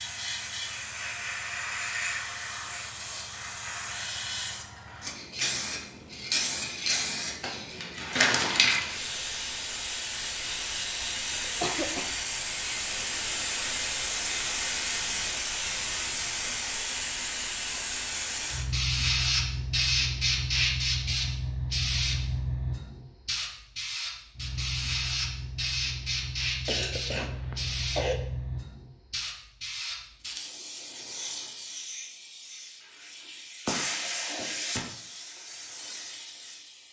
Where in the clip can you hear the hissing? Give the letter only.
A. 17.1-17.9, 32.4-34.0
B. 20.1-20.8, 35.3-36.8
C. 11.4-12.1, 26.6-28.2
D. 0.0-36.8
D.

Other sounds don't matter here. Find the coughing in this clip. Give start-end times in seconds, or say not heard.
11.4-12.1, 26.6-28.2.